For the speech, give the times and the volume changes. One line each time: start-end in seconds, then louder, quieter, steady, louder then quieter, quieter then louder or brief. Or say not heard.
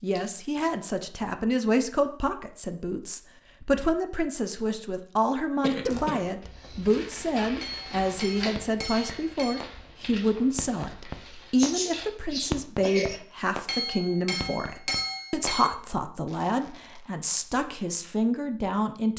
0.0-19.1 steady.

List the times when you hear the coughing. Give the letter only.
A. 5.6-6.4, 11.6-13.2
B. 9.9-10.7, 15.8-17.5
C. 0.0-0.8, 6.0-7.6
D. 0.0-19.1
A.